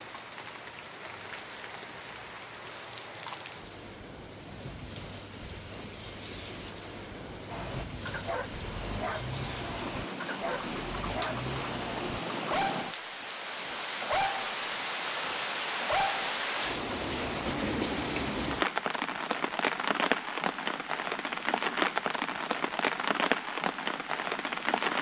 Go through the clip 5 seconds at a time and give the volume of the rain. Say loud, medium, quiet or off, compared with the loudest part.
quiet, medium, medium, loud, loud.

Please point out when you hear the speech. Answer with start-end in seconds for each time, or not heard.
not heard.